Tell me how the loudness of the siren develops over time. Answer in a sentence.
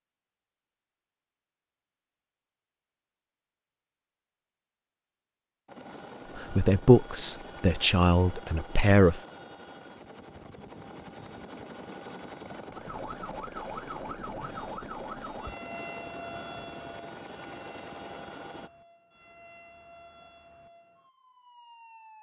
The volume of the siren goes down.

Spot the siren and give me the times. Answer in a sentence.
The siren can be heard from 12.7 to 22.1 s.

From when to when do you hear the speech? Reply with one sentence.
You can hear the speech from 6.3 to 9.2 s.